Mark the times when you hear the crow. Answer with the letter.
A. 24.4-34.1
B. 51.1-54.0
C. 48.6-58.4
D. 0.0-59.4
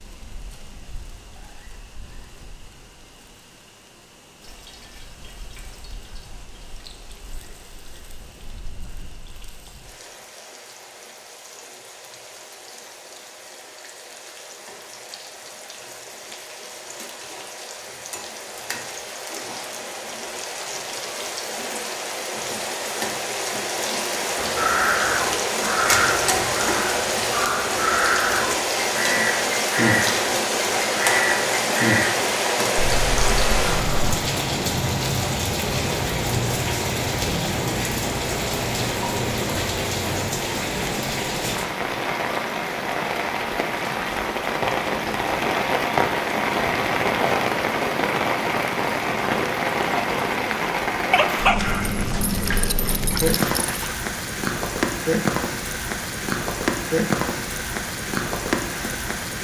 A.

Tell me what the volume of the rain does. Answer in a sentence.
The volume of the rain goes up.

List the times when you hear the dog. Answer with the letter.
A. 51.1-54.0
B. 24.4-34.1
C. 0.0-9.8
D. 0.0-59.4
A.